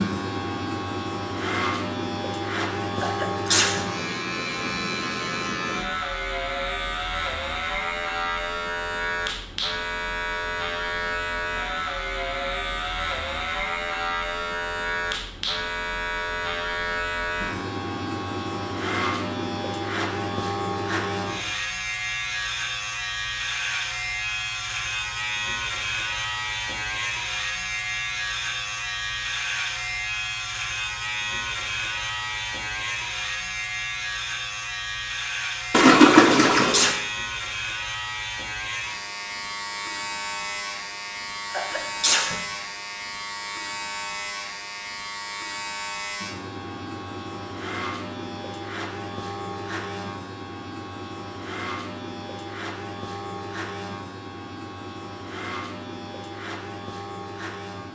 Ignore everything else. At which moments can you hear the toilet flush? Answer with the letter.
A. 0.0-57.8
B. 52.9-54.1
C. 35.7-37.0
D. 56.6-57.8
C.